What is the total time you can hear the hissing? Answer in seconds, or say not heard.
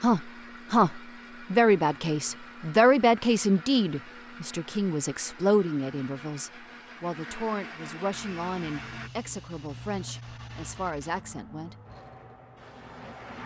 5 s.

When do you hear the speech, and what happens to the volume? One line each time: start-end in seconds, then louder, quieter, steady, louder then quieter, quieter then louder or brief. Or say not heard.
0.0-11.8 quieter.